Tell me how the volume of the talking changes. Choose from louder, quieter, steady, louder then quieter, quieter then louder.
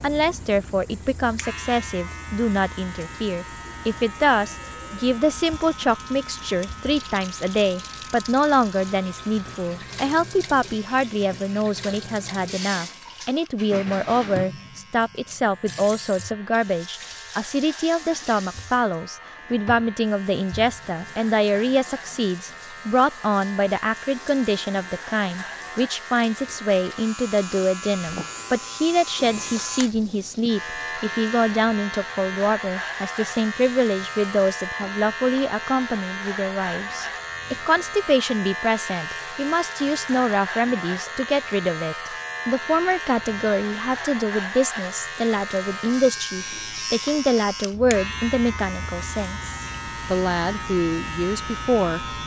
steady.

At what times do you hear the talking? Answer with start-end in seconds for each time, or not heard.
0.0-52.0.